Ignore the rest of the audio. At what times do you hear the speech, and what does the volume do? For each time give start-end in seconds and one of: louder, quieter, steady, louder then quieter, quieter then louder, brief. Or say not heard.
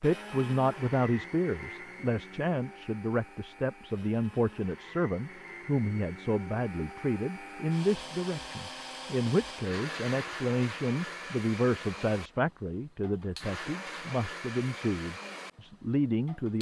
0.0-16.5 steady.